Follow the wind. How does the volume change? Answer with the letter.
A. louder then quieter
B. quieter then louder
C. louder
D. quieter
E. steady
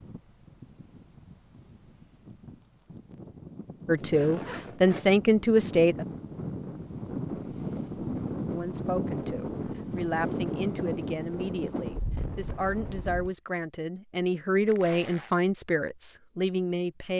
C.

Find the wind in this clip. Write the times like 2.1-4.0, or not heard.
0.0-13.3.